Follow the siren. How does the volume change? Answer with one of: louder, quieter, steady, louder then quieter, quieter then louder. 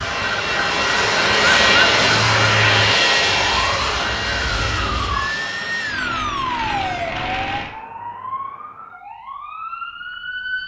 quieter.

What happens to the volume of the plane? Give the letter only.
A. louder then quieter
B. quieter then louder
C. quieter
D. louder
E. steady
C.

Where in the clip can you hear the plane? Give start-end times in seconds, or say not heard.
0.0-7.7.